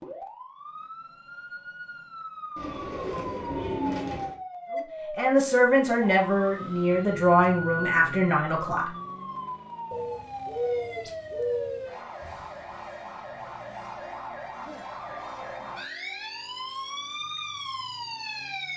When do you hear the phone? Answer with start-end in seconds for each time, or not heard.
not heard.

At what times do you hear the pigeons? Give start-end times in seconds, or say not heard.
2.5-4.3, 9.9-11.8.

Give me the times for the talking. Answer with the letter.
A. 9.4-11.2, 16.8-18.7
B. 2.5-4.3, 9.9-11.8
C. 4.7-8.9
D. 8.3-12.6
C.